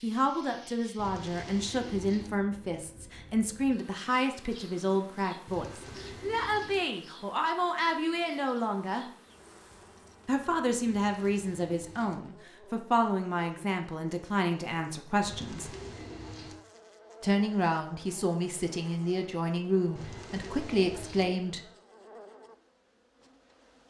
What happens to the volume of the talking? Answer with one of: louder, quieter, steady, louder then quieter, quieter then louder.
steady.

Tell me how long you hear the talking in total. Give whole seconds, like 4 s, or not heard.
19 s.